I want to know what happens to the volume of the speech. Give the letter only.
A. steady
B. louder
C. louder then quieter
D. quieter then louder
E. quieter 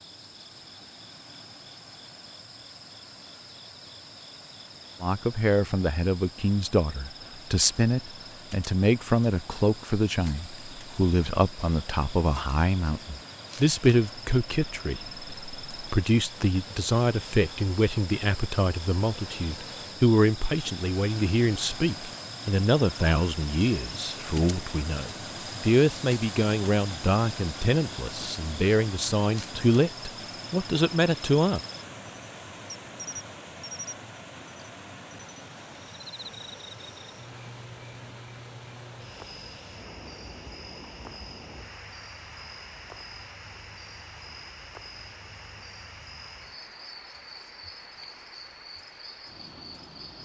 A.